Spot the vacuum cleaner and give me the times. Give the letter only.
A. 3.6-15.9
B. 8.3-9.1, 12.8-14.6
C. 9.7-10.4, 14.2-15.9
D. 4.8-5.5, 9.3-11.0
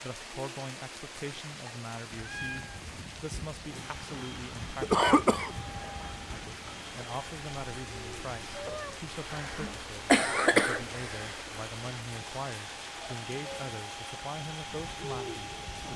A.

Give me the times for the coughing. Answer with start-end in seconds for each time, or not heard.
4.8-5.5, 9.3-11.0.